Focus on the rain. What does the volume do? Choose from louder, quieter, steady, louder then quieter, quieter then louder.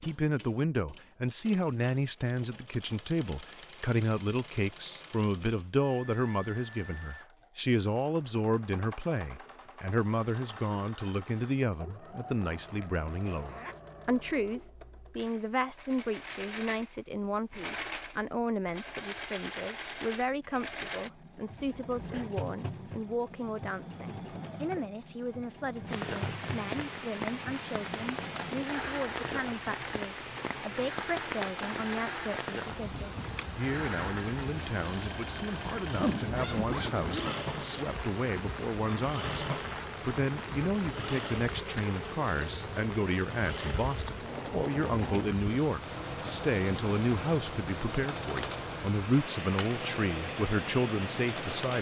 steady.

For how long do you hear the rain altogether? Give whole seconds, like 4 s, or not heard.
26 s.